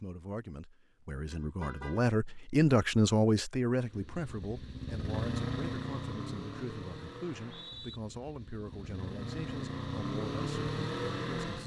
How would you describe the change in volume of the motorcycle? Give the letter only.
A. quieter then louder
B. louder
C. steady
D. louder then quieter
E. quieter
A.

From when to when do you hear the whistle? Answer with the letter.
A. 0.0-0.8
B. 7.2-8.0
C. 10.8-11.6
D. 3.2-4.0
B.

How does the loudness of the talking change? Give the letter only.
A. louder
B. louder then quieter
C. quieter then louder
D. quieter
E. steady
B.